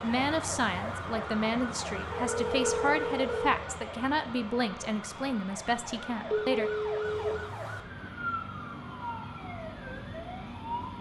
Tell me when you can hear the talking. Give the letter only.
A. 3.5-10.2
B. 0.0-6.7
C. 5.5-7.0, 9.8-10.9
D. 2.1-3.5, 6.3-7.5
B.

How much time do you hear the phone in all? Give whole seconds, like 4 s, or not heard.
3 s.